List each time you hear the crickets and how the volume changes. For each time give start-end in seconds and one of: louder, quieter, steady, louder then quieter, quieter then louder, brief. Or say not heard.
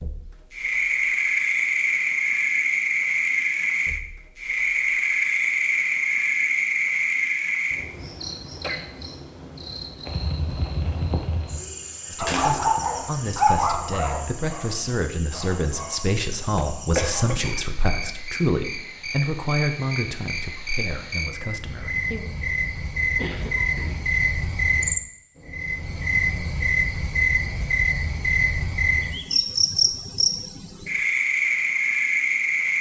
0.0-32.7 quieter then louder.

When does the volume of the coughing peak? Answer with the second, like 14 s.
17 s.